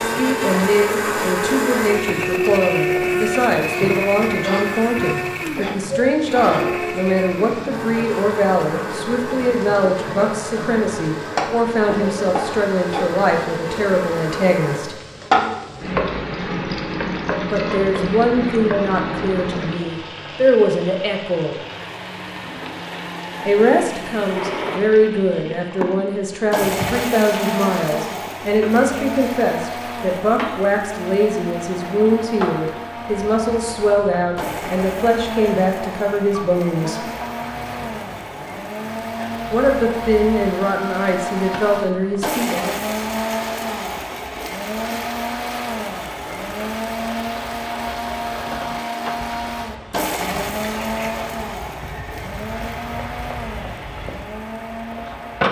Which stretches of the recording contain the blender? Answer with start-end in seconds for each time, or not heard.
0.0-15.0, 21.6-55.4.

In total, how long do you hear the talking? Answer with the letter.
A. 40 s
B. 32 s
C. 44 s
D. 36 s
D.